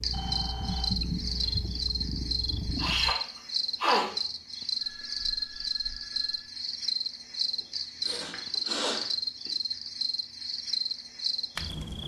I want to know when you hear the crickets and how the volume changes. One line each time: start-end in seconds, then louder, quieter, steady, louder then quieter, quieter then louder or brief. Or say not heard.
0.0-12.0 steady.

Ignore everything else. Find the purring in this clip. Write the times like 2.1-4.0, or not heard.
0.0-3.1.